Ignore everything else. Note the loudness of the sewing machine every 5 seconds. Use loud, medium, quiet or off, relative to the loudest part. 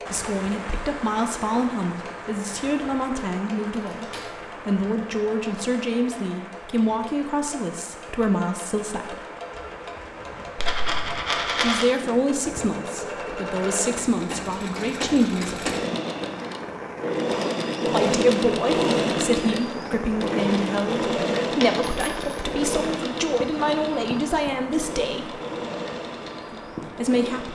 quiet, quiet, medium, loud, loud, medium.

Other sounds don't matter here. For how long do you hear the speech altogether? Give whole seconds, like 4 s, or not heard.
22 s.